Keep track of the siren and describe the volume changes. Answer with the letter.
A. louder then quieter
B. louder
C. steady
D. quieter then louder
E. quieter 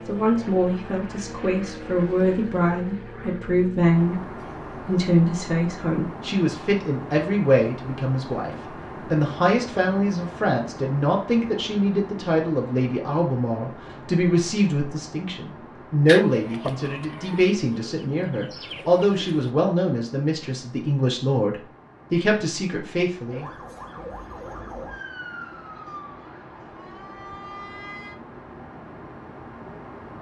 D.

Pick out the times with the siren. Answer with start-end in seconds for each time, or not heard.
23.2-28.1.